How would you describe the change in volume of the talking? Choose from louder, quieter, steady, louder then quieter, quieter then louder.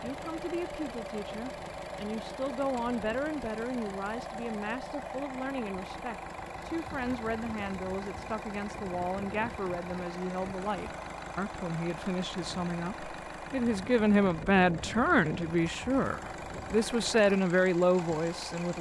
louder.